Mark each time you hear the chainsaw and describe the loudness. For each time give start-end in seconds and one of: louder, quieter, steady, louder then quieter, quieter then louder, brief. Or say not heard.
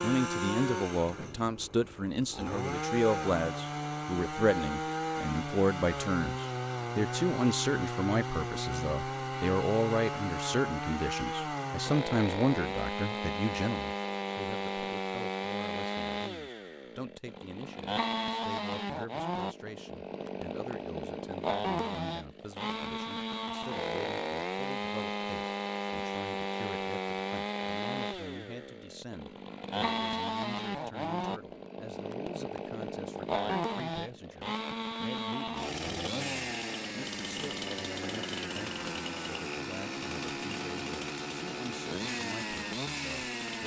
0.0-43.6 steady.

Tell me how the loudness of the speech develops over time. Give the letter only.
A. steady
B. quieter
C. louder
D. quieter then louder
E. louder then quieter
B.